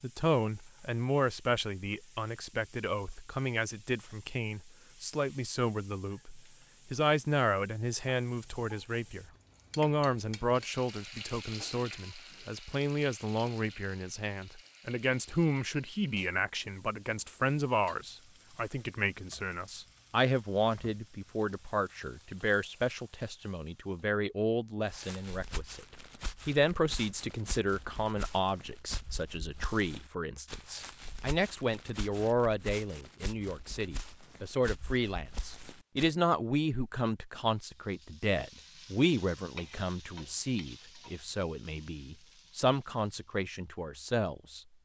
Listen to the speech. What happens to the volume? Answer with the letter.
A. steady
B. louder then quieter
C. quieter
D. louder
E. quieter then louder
A.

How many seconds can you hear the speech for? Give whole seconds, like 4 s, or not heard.
44 s.